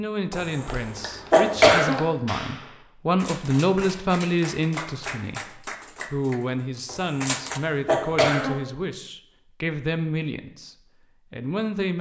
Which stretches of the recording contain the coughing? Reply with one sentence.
The coughing can be heard from 0.3 to 1.9 s and from 6.8 to 8.6 s.